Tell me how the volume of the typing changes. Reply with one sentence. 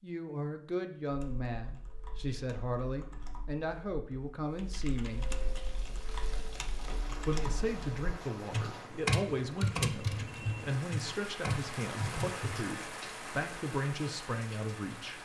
The loudness of the typing goes up.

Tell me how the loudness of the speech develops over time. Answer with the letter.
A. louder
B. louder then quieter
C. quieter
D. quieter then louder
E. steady
E.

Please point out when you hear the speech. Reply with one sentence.
The speech can be heard from 0.0 to 5.2 s and from 7.2 to 15.2 s.